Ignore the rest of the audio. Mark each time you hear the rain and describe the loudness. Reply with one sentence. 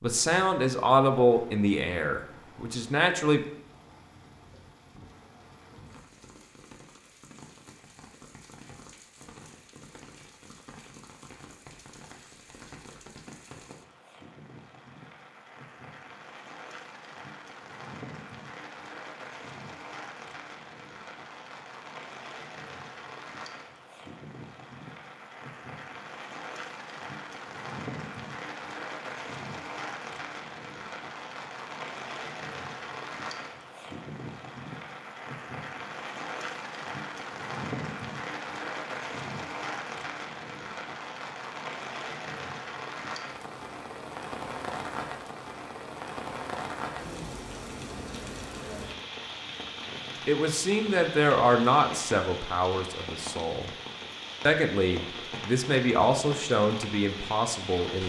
You can hear the rain from 0.0 to 58.0 s, getting louder.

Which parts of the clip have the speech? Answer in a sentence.
The speech can be heard from 0.0 to 3.4 s, from 50.2 to 53.7 s and from 54.5 to 58.0 s.